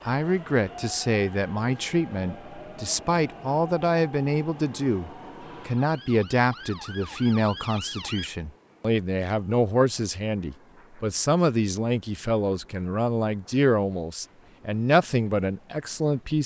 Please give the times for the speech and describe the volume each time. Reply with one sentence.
You can hear the speech from 0.1 to 16.4 s, at a steady volume.